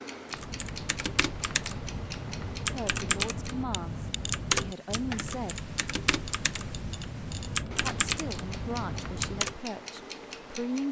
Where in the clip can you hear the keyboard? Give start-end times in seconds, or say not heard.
0.3-9.6.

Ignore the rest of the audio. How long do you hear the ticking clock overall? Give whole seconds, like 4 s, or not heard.
11 s.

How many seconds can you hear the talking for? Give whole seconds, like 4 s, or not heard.
6 s.